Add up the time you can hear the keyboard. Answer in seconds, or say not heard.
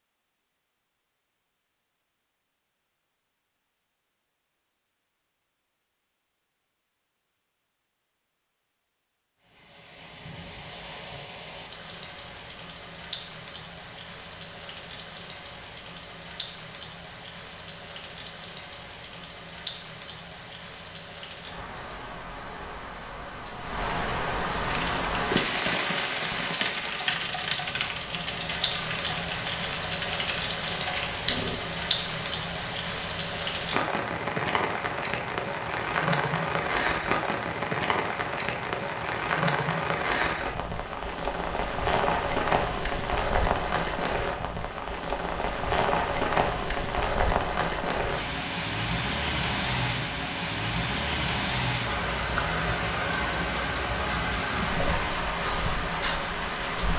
7 s.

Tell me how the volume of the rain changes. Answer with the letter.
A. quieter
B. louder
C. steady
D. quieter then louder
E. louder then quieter
B.